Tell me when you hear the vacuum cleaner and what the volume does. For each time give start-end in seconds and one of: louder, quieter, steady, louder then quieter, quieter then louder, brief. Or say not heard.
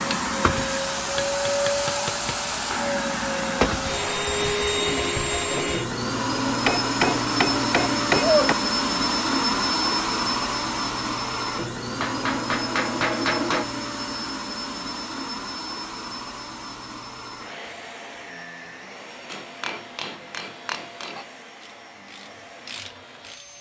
0.0-23.5 quieter.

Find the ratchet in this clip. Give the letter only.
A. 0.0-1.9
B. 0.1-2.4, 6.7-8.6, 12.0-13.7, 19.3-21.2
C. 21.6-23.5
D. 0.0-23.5
C.